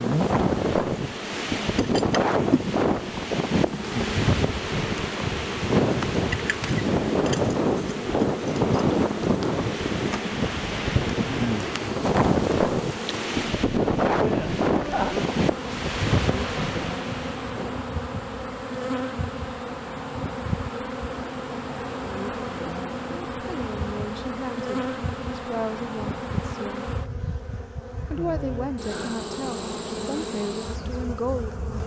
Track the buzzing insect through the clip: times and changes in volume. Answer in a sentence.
You can hear the buzzing insect from 0.0 to 31.8 s, at a steady volume.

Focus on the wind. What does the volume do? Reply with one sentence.
The loudness of the wind stays about the same.